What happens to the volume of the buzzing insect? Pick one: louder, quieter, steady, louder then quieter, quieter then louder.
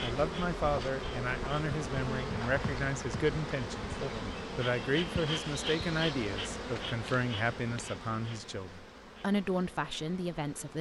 quieter.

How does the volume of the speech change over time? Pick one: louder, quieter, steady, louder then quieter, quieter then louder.
steady.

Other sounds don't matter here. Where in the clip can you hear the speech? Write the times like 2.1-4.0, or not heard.
0.0-4.0, 4.5-10.7.